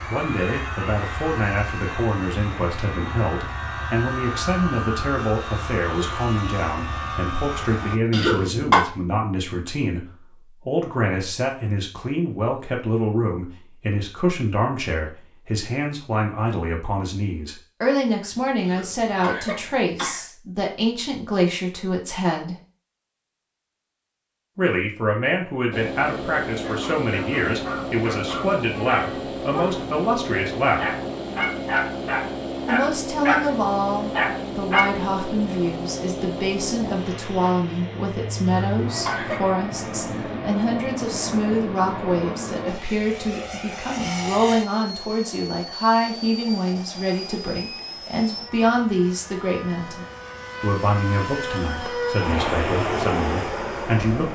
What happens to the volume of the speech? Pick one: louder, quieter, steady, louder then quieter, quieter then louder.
steady.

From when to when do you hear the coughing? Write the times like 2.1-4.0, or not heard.
8.1-8.8, 18.6-20.2, 38.5-39.5.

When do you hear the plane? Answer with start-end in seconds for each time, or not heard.
0.0-8.0, 25.7-54.3.